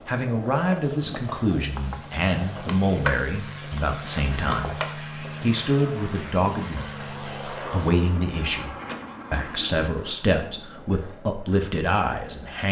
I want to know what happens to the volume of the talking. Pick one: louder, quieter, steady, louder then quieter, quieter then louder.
steady.